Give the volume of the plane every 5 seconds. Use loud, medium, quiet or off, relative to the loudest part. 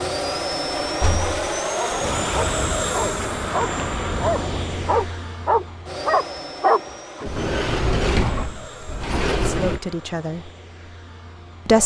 loud, medium, quiet.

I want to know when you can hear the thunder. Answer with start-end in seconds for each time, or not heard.
1.9-5.0.